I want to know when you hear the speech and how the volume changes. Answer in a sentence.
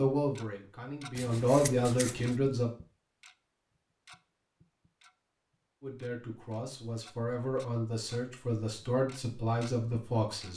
You can hear the speech briefly from 0.0 to 2.7 s; and from 5.8 to 10.5 s, getting louder.